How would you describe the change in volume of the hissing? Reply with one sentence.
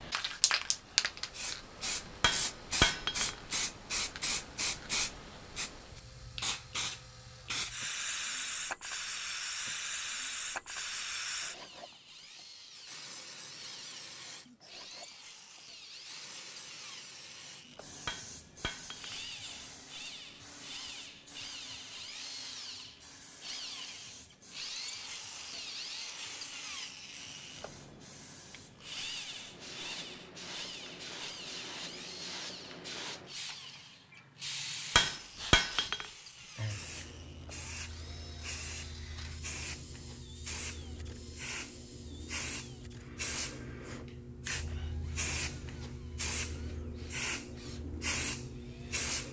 The loudness of the hissing goes down, then up.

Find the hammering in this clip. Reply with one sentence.
You can hear the hammering from 2.2 to 3.4 s, from 18.1 to 19.1 s and from 35.0 to 36.0 s.